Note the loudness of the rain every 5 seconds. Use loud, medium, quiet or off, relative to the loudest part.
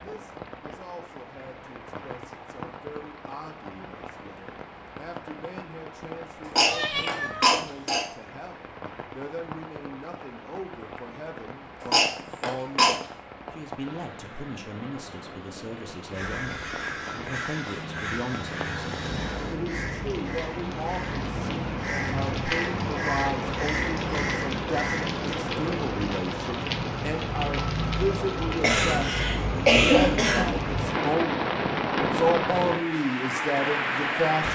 quiet, quiet, quiet, medium, loud, loud, loud.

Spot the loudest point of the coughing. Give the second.
30 s.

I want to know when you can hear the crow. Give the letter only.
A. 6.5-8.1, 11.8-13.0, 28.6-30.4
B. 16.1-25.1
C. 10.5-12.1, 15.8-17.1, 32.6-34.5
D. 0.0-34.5
B.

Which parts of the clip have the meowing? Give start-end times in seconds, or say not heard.
6.7-8.0.